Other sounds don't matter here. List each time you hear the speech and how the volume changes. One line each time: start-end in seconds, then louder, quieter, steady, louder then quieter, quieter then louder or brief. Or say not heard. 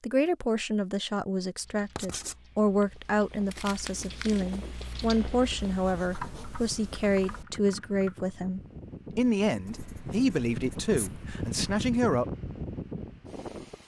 0.0-12.2 steady.